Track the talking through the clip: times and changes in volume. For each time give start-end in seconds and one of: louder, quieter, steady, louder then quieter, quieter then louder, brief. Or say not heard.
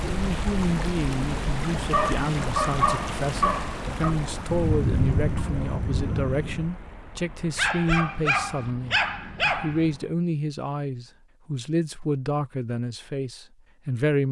0.0-14.2 steady.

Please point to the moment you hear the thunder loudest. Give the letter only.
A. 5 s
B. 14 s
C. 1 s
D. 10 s
A.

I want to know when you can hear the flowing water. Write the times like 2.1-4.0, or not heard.
0.0-10.2.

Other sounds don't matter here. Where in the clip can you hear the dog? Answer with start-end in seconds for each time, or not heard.
1.9-4.2, 7.5-9.9.